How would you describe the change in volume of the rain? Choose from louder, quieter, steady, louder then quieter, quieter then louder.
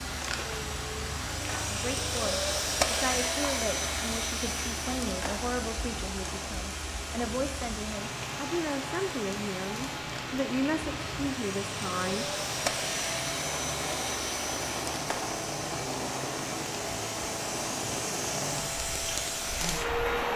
steady.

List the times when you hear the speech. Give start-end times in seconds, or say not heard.
1.7-12.2.